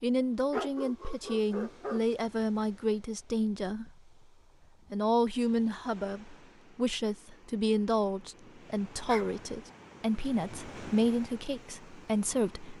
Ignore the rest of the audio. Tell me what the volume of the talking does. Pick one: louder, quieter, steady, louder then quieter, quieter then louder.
steady.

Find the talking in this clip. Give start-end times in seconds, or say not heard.
0.0-3.9, 4.9-12.7.